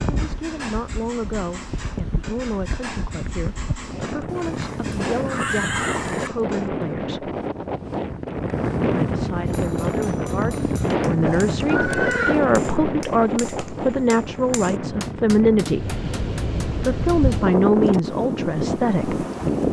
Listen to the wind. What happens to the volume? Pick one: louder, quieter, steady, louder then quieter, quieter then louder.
louder.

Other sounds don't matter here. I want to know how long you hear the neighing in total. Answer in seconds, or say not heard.
3 s.